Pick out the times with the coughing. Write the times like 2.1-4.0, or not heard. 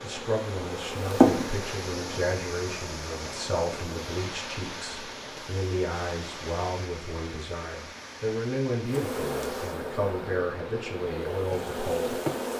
not heard.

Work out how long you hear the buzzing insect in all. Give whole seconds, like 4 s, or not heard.
6 s.